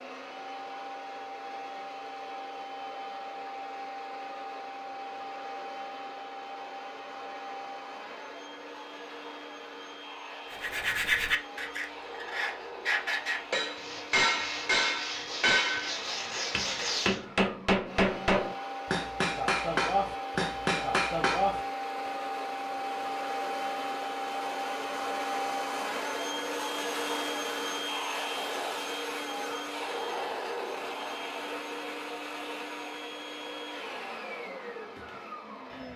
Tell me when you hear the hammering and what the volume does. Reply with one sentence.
The hammering can be heard from 13.5 to 22.1 s, at a steady volume.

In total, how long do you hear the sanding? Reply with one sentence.
You can hear the sanding for 7 seconds altogether.